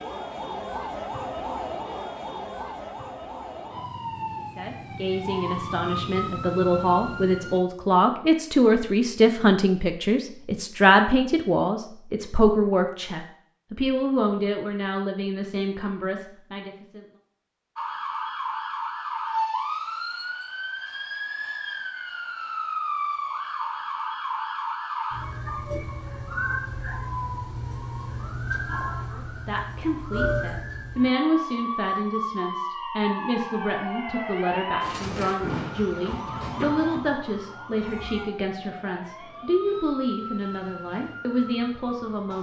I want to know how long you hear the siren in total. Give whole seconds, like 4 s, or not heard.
32 s.